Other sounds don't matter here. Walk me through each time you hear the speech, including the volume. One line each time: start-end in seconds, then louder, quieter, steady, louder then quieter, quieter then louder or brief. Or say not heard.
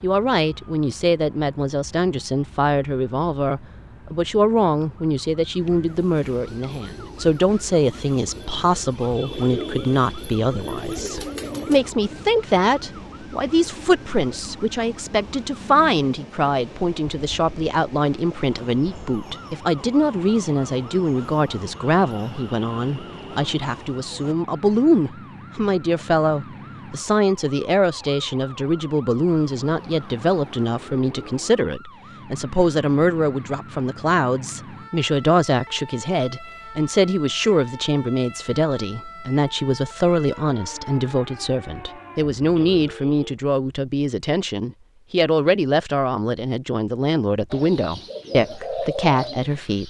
0.0-49.8 steady.